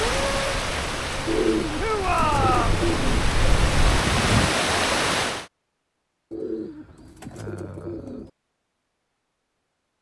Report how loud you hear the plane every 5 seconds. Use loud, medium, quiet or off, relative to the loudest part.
loud, off.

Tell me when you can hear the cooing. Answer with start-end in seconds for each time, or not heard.
1.2-3.2, 6.3-8.3.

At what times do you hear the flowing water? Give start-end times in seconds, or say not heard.
0.0-5.5.